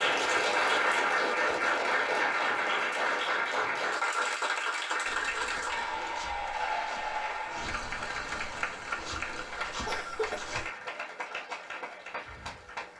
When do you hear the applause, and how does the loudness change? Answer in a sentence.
You can hear the applause from 0.0 to 12.9 s, getting quieter.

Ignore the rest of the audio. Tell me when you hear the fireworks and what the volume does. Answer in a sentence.
The fireworks can't be heard in this clip.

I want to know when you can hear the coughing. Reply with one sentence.
You can hear the coughing from 9.8 to 10.4 s.